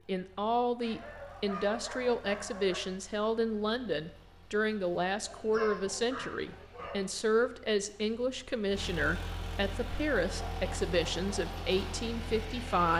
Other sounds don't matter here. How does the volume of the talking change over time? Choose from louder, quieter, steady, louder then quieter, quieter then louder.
steady.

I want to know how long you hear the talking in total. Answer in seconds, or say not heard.
13 s.